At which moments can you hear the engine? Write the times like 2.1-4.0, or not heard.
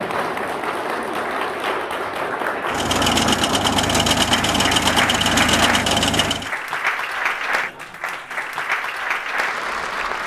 2.6-6.5.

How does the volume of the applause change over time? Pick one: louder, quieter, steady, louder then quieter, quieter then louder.
steady.